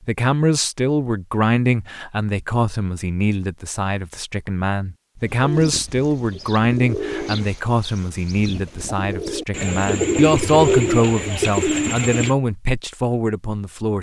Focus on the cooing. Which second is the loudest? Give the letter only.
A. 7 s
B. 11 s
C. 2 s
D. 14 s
B.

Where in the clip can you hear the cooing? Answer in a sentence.
You can hear the cooing from 5.2 to 12.3 s.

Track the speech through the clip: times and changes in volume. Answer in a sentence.
The speech can be heard from 0.1 to 13.9 s, at a steady volume.